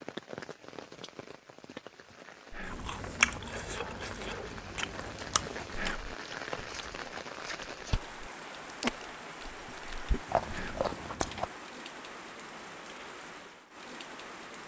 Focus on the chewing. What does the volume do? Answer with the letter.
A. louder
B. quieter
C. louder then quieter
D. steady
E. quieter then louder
E.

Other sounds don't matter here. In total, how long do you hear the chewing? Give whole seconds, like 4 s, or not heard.
9 s.